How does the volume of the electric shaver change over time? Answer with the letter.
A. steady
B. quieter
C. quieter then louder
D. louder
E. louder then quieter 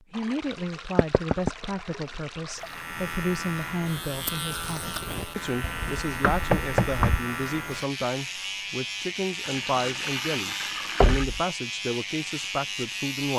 A.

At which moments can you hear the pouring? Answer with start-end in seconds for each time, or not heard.
0.1-2.9, 9.4-11.2.